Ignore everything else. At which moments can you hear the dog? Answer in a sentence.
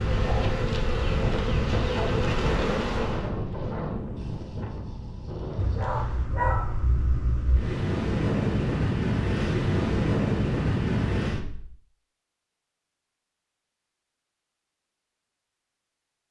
You can hear the dog from 5.5 to 7.6 s.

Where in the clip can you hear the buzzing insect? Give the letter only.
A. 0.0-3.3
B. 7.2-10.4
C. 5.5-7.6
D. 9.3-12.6
A.